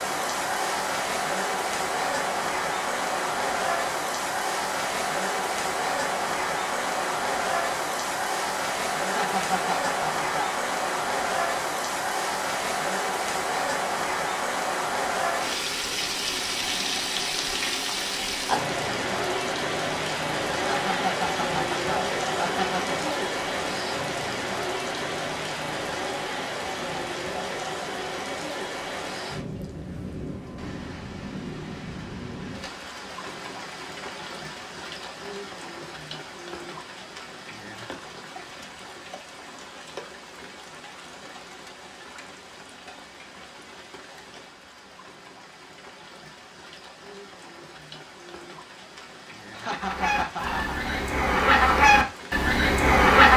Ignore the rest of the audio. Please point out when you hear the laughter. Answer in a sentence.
You can hear the laughter from 9.0 to 10.5 s, from 20.6 to 23.1 s and from 49.5 to 51.0 s.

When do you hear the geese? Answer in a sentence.
The geese can be heard from 49.8 to 53.3 s.